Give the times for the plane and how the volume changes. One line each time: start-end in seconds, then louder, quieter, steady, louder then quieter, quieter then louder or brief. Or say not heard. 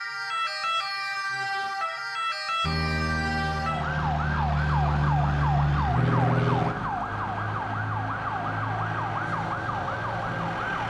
2.6-6.8 louder.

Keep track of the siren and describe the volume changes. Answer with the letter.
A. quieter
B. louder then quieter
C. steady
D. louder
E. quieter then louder
C.